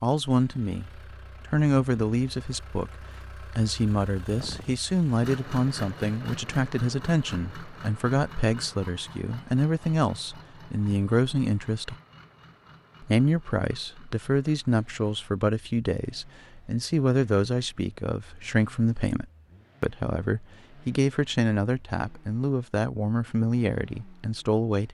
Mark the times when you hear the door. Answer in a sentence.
You can't hear the door here.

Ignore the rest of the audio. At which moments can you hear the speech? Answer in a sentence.
The speech can be heard from 0.0 to 11.9 s and from 13.0 to 24.8 s.